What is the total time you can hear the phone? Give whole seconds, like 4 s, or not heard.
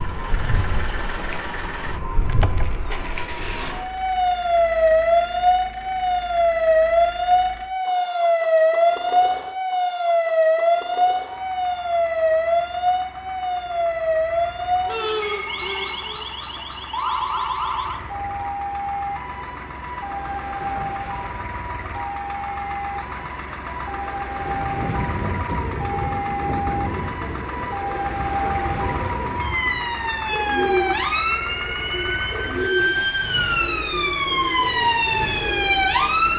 2 s.